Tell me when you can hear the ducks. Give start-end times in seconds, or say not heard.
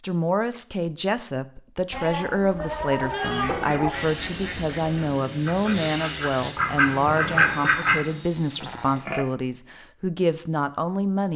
3.2-8.0.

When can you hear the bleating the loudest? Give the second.
3 s.